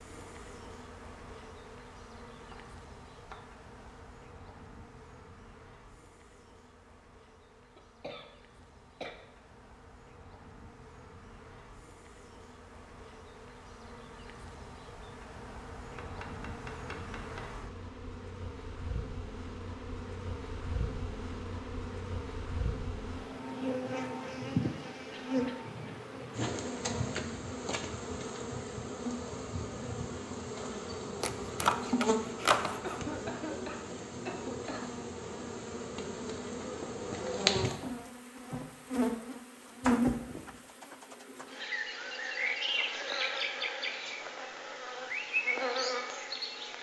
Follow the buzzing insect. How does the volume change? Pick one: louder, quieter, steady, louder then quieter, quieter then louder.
louder.